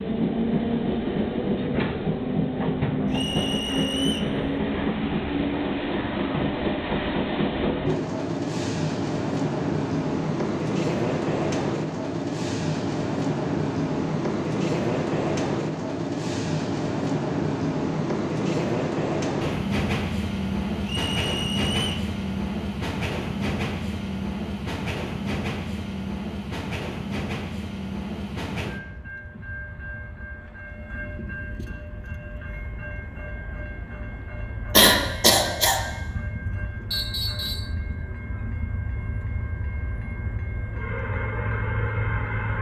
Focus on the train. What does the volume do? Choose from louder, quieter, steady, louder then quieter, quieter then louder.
quieter.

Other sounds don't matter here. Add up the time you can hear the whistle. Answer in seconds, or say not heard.
3 s.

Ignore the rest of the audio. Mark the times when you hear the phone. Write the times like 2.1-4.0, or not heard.
not heard.